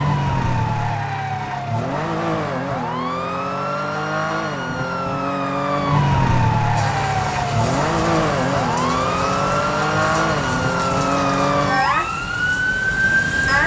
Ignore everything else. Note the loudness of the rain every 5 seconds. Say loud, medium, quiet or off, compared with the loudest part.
off, loud, loud.